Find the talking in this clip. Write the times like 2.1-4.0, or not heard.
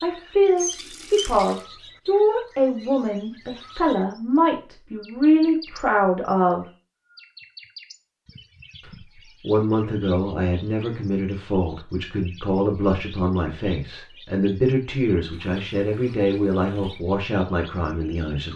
0.0-6.7, 8.8-18.5.